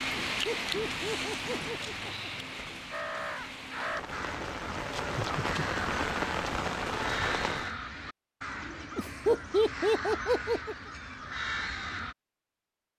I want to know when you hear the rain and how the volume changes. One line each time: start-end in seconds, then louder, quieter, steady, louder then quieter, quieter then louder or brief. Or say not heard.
0.0-7.8 quieter then louder.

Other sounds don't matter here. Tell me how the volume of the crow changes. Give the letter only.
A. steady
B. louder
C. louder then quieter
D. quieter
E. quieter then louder
A.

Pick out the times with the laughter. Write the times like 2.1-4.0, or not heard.
0.2-2.3, 5.0-5.6, 8.9-10.8.